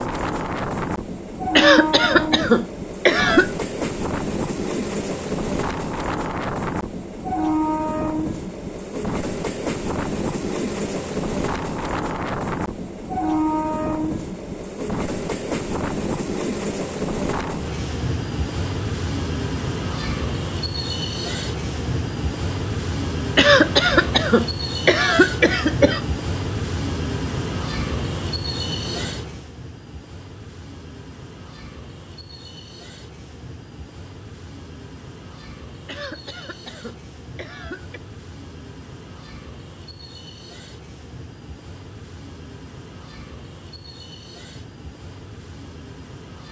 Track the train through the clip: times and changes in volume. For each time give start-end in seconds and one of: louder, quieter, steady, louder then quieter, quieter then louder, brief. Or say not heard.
0.0-46.4 quieter.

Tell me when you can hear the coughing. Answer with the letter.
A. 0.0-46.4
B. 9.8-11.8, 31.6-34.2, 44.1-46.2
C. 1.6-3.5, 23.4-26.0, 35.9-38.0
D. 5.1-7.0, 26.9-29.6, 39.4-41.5
C.